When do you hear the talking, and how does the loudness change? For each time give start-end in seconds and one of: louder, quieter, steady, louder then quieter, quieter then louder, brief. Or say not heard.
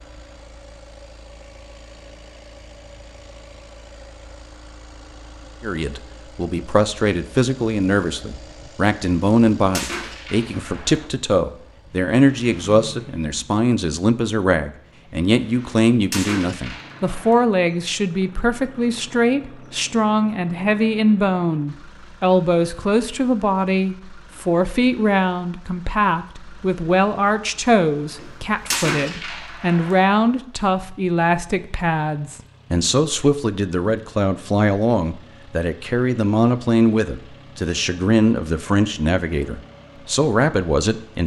5.6-41.2 steady.